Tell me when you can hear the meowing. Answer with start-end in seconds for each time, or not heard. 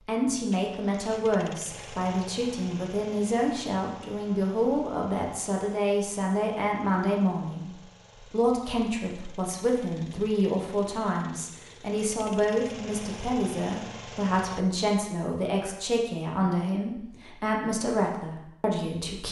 not heard.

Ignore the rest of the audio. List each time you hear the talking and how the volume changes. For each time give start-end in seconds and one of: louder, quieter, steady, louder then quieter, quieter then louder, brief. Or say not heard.
0.1-19.2 steady.